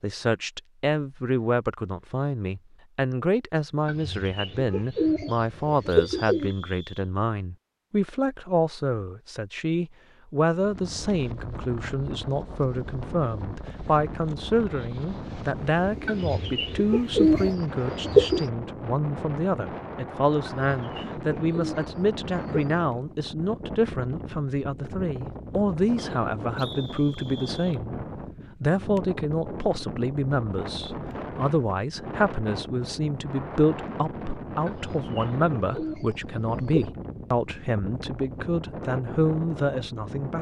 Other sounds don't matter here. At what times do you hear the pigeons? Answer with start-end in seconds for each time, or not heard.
3.9-6.5, 16.1-18.5, 20.6-22.8, 34.6-36.9.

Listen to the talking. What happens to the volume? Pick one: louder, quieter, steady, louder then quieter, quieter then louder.
steady.